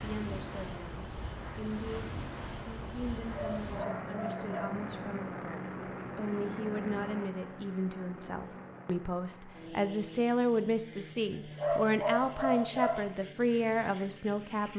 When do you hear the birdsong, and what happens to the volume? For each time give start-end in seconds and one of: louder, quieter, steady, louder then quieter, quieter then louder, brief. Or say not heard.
not heard.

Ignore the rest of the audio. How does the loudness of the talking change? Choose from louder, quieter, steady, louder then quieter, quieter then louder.
louder.